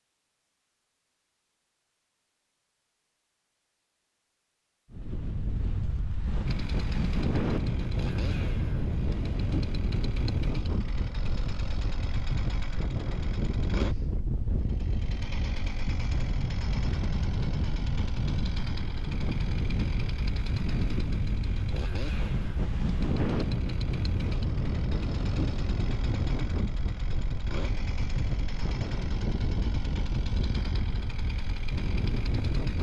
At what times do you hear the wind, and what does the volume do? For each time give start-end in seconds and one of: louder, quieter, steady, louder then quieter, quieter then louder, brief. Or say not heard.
4.9-32.7 steady.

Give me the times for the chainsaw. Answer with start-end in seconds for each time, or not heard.
6.5-32.7.